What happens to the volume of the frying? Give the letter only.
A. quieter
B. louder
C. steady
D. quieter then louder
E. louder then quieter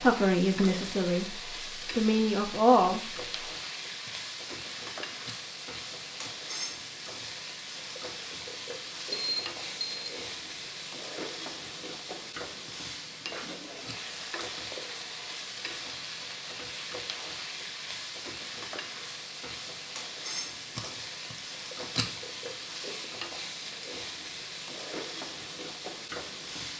C.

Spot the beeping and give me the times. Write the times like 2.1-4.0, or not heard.
9.1-10.2.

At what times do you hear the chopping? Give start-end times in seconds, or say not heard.
not heard.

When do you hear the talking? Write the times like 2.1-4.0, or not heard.
0.0-3.0.